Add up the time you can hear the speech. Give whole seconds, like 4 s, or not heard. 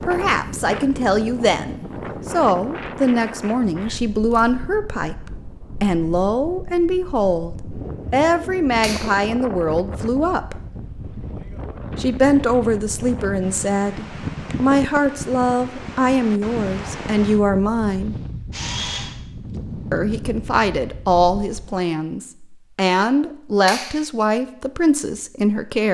23 s.